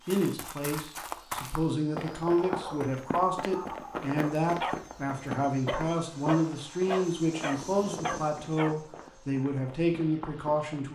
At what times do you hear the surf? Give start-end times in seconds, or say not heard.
not heard.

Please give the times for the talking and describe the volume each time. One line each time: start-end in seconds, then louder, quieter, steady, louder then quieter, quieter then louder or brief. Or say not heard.
0.1-10.8 steady.